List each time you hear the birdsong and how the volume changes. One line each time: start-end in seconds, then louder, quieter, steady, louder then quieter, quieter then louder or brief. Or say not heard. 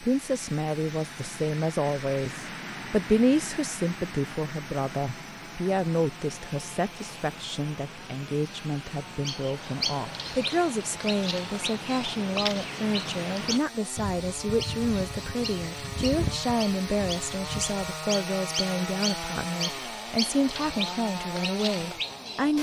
9.2-22.5 steady.